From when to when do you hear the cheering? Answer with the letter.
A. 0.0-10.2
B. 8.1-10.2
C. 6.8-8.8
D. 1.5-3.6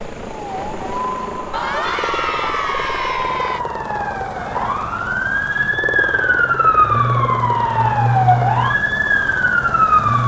D.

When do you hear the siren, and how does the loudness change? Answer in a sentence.
The siren can be heard from 0.0 to 10.2 s, getting louder.